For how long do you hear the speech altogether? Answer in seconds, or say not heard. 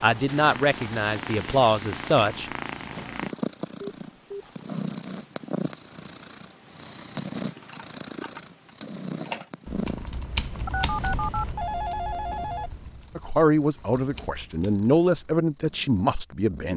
6 s.